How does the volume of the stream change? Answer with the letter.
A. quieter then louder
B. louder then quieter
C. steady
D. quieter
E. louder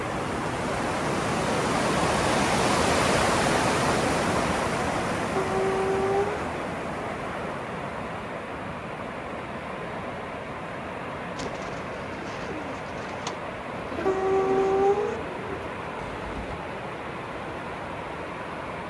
D.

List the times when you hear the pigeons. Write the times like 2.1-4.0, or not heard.
11.3-16.6.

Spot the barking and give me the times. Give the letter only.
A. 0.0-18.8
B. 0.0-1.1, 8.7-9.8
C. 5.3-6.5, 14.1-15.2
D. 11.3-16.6
C.